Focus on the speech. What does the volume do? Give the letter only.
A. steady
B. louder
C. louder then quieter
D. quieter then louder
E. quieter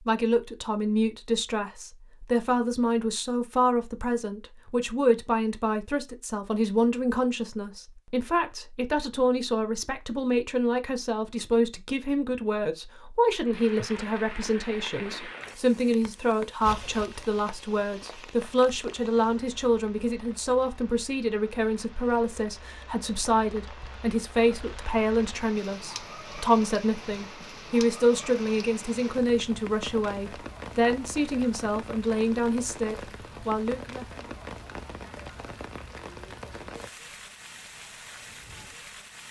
A.